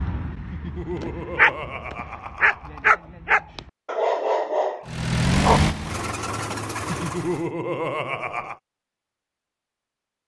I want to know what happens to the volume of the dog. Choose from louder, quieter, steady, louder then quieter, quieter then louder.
louder.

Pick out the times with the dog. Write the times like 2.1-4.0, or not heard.
0.0-5.6.